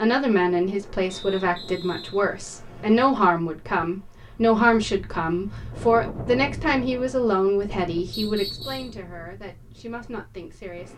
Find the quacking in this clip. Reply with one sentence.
The quacking can't be heard in this clip.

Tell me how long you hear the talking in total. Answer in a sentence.
The talking can be heard for 11 seconds in total.